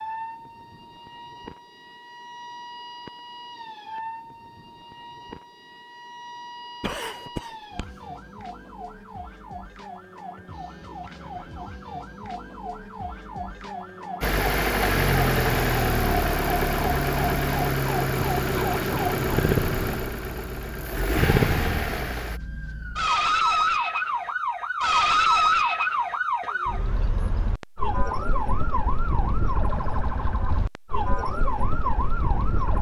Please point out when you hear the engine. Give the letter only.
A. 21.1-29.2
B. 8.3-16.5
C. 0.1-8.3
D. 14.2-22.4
D.